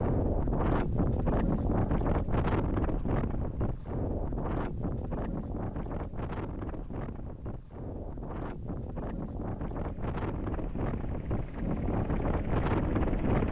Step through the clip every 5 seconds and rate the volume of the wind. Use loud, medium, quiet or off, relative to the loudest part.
loud, medium, loud.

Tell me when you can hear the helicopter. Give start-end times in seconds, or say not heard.
9.9-13.4.